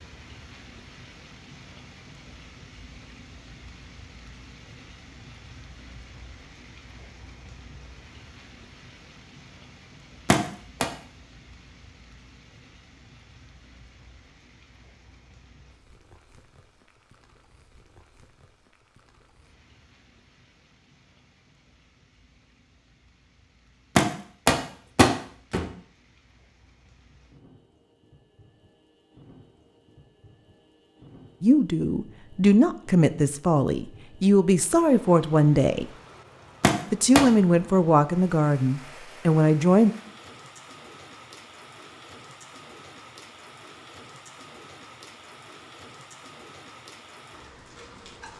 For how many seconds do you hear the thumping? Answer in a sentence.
The thumping can be heard for 3 seconds in total.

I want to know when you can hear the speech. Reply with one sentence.
You can hear the speech from 31.4 to 35.9 s and from 36.9 to 39.9 s.